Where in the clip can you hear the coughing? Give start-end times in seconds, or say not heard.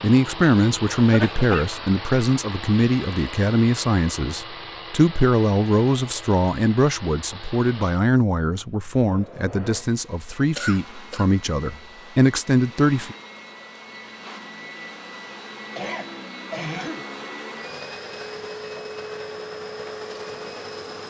1.0-1.6, 10.6-11.2, 15.8-17.1.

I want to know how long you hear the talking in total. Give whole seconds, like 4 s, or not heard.
13 s.